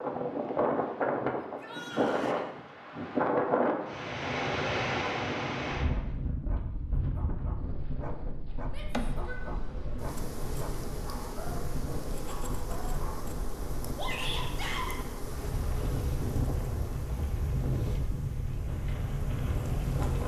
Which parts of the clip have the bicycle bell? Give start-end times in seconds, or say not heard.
not heard.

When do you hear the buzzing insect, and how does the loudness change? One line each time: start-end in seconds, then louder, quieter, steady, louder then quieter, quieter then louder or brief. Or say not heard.
8.9-20.2 quieter.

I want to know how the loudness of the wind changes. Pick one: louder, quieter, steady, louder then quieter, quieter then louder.
quieter then louder.